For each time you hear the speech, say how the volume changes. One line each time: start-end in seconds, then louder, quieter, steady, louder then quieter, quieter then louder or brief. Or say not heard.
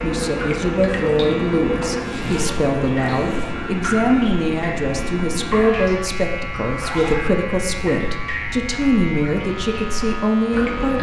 0.0-10.9 steady.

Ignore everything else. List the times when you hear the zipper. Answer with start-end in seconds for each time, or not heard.
1.9-3.5, 6.7-7.3.